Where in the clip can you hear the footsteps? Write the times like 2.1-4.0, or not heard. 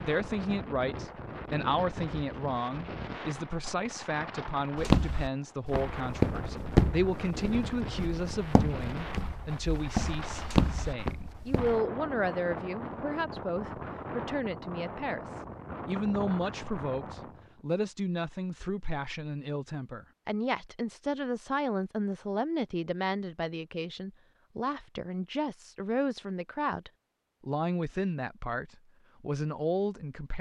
4.8-11.8.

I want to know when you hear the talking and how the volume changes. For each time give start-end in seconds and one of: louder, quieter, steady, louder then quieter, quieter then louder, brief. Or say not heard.
0.1-30.3 steady.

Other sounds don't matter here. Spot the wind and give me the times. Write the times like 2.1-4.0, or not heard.
0.0-17.6.